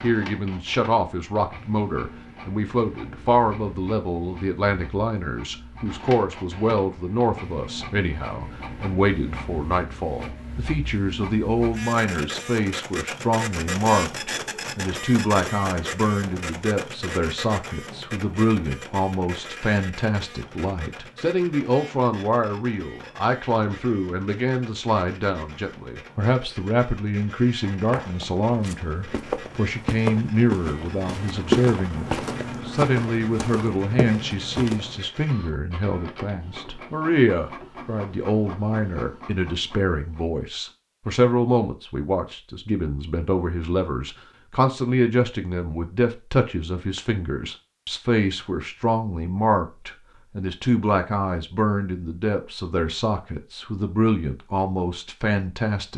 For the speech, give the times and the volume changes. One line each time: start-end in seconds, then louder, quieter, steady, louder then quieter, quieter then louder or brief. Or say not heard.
0.0-55.9 steady.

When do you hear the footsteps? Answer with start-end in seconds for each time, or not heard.
27.6-35.0.